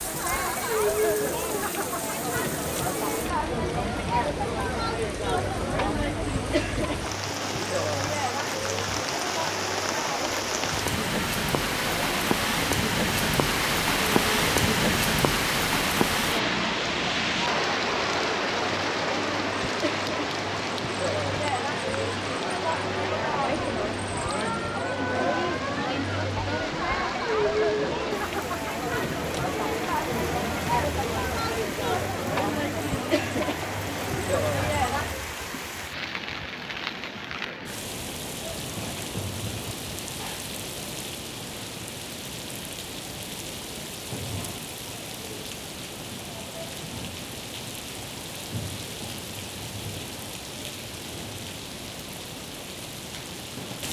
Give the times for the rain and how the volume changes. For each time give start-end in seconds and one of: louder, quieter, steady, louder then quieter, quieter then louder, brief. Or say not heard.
0.0-53.8 louder then quieter.